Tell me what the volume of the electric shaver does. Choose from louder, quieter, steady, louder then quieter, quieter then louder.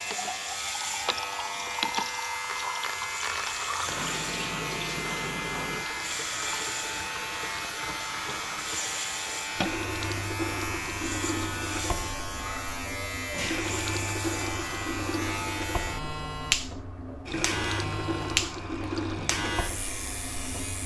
steady.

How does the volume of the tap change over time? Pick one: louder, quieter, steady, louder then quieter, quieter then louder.
steady.